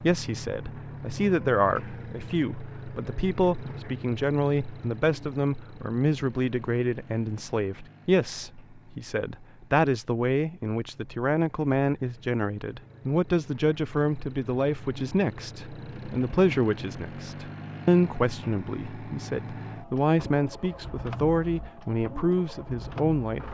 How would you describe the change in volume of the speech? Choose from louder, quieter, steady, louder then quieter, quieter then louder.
steady.